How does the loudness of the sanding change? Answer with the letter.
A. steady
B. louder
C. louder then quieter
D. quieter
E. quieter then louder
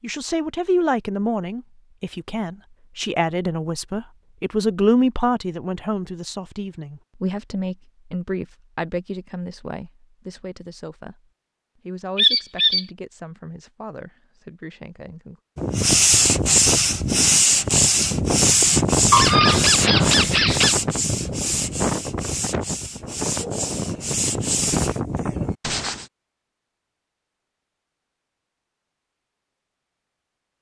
D.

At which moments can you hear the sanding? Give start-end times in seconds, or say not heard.
15.6-26.1.